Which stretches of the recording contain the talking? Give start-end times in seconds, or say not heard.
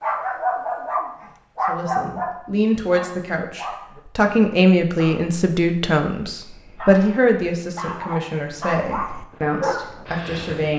1.6-10.7.